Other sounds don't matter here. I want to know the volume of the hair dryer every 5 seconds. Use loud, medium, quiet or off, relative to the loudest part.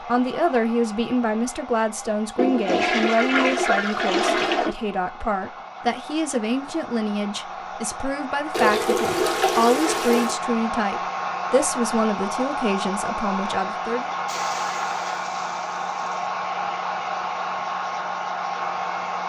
medium, medium, loud, loud.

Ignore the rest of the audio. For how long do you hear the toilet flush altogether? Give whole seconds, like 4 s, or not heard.
6 s.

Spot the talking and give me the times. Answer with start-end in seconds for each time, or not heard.
0.0-14.1.